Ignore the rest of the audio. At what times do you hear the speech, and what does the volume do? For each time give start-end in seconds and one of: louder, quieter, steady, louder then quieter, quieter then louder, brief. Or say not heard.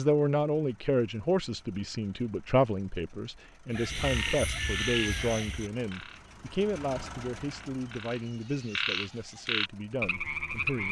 0.0-10.8 quieter.